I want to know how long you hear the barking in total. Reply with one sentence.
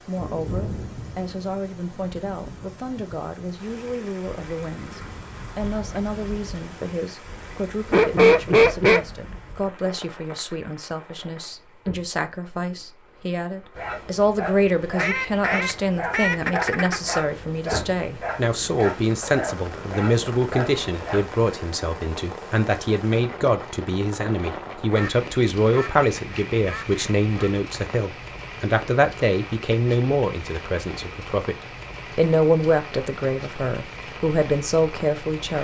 You can hear the barking for 8 seconds altogether.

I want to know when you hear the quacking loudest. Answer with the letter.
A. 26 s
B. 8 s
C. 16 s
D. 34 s
B.